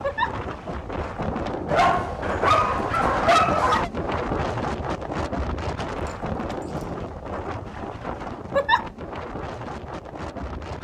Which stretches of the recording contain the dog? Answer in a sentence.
The dog can be heard from 1.6 to 3.9 s and from 6.0 to 7.0 s.